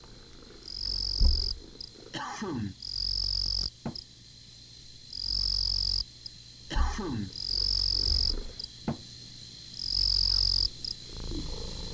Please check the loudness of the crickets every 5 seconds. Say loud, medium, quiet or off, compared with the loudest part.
medium, loud, loud.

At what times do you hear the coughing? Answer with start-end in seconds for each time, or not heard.
2.1-2.9, 6.7-7.3.